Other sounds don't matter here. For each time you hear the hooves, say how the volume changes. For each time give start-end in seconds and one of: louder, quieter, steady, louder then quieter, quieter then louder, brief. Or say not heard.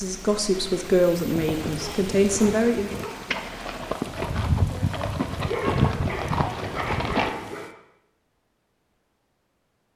1.1-7.3 louder.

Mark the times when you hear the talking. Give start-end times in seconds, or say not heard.
0.0-2.9.